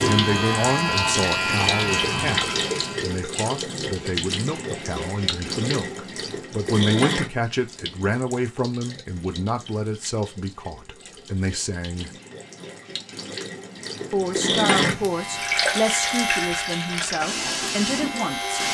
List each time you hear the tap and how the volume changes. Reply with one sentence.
You can hear the tap from 0.0 to 18.6 s, getting quieter then louder.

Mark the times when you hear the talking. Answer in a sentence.
You can hear the talking from 0.0 to 12.1 s and from 14.1 to 18.6 s.